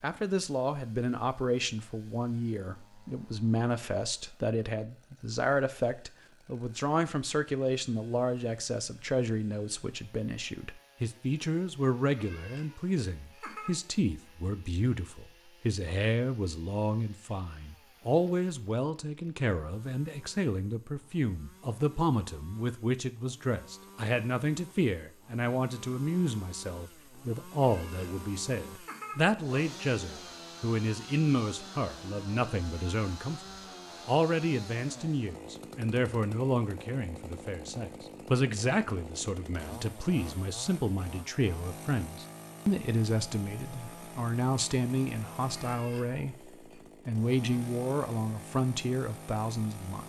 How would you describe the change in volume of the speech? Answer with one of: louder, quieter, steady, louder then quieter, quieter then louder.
steady.